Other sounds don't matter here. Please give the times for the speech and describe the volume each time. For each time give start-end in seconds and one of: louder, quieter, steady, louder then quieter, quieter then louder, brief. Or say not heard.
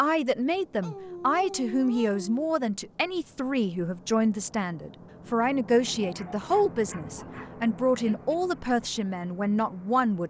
0.0-10.2 steady.